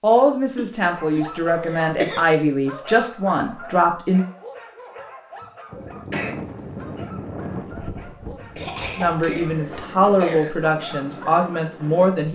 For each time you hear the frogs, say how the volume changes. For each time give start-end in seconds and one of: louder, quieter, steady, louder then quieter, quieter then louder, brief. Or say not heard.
not heard.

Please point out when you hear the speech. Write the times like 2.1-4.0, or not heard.
0.0-4.2, 8.9-12.2.